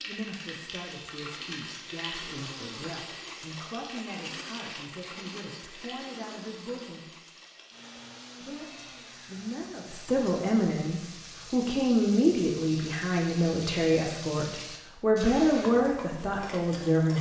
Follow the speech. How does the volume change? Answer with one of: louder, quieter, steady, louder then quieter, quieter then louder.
louder.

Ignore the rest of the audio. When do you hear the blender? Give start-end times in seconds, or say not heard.
0.0-10.4.